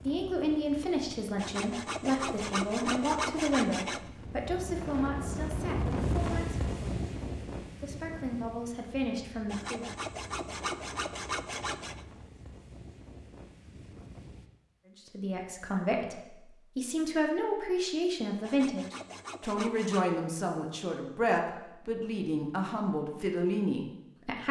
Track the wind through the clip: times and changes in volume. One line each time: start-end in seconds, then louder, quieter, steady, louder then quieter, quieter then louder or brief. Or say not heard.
0.0-14.5 louder then quieter.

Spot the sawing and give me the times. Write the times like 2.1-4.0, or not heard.
1.4-4.0, 9.4-12.1, 18.4-20.1.